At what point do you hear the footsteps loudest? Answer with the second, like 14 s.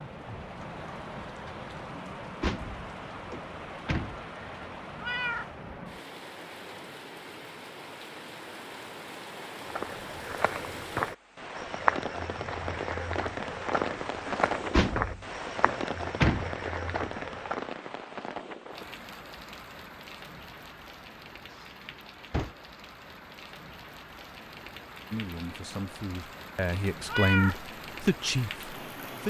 12 s.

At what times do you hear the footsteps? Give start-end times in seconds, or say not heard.
9.7-17.7.